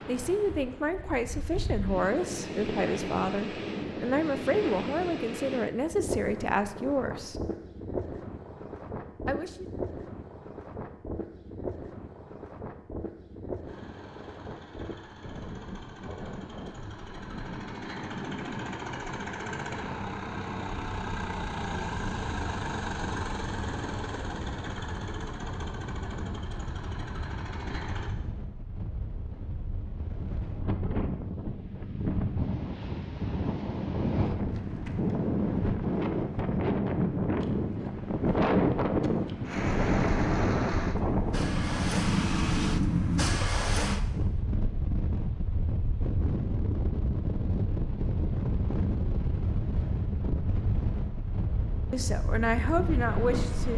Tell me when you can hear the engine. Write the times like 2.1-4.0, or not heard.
13.7-28.1, 39.4-44.0.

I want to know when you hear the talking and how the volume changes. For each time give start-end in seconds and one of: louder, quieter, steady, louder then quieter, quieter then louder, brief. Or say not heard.
0.1-7.3 steady
9.2-9.7 brief
51.9-53.7 brief.